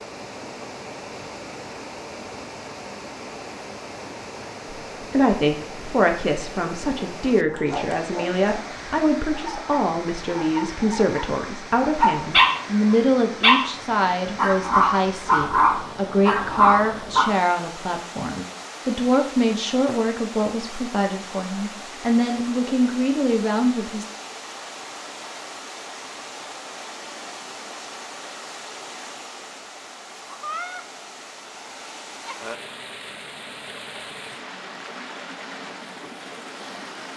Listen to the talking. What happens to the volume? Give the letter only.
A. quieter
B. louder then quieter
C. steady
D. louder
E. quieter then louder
C.